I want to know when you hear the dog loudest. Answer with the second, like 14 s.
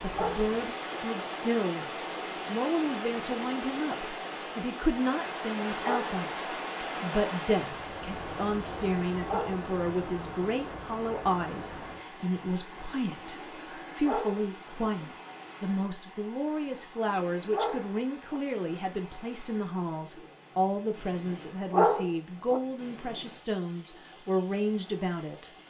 22 s.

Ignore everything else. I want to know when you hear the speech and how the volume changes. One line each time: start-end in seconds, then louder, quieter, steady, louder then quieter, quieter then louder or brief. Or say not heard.
0.0-1.9 brief
2.5-25.5 steady.